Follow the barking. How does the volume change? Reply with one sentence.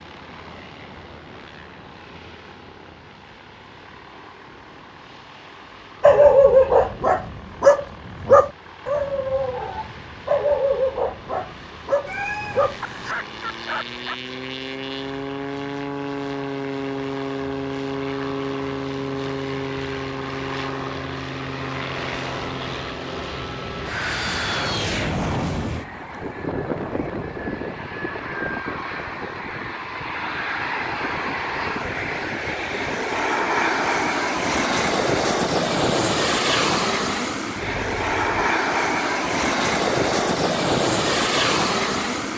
The volume of the barking goes down.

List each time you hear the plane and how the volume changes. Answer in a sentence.
You can hear the plane from 0.0 to 42.3 s, getting louder.